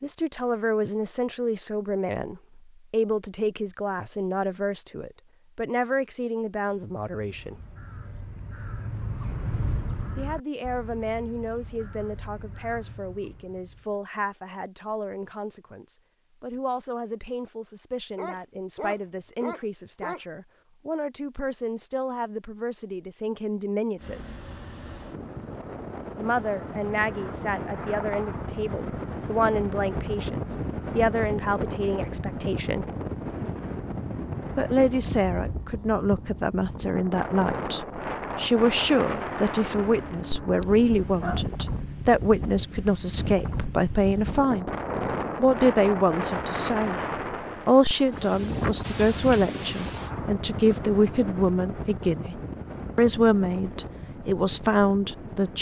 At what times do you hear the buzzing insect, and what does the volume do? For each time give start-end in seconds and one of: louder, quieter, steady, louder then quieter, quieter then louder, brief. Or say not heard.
not heard.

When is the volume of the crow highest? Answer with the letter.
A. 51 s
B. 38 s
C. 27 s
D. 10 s
D.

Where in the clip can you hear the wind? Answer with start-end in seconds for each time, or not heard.
23.9-55.5.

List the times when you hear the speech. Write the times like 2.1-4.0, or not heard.
0.0-7.5, 10.2-24.2, 26.1-32.9, 34.5-44.7, 45.4-47.0, 47.6-55.5.